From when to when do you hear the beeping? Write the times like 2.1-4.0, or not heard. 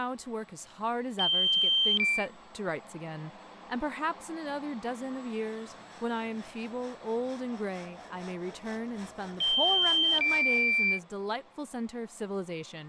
1.1-2.2, 9.6-11.0.